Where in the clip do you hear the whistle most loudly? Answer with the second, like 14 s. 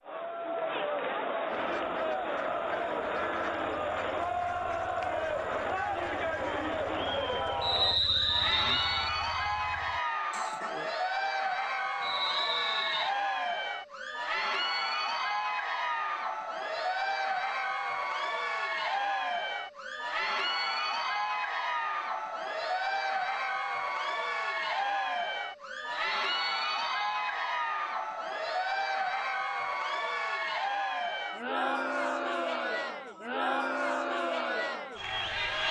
8 s.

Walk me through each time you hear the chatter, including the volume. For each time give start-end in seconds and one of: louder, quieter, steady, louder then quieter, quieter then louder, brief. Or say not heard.
0.0-35.6 steady.